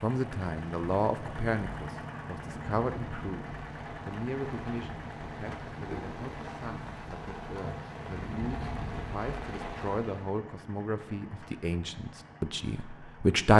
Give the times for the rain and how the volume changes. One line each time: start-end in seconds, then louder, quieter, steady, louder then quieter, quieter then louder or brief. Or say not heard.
0.1-10.3 louder.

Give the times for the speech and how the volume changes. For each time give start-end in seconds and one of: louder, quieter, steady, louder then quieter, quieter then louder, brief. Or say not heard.
0.0-13.5 quieter then louder.